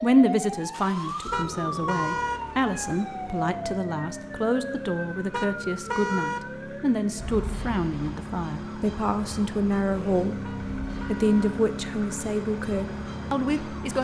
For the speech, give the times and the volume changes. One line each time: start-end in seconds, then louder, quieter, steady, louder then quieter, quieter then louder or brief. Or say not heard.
0.0-13.9 steady.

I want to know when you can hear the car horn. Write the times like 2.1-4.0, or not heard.
1.3-2.4, 5.3-6.4, 10.4-11.6.